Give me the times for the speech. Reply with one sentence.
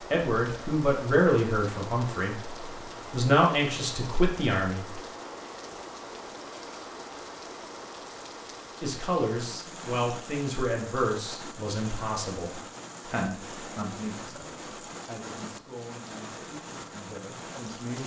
The speech can be heard from 0.1 to 5.0 s and from 8.8 to 18.0 s.